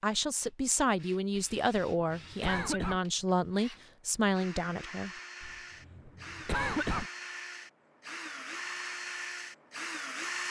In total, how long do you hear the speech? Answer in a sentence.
You can hear the speech for 5 seconds altogether.